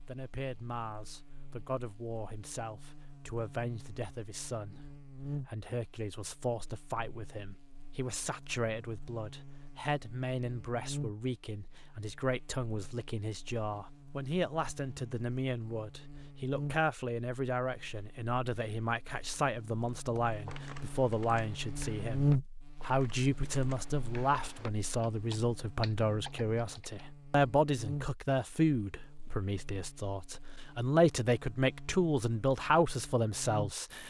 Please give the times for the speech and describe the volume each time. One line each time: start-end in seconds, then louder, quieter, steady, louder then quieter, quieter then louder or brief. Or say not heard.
0.1-34.0 louder.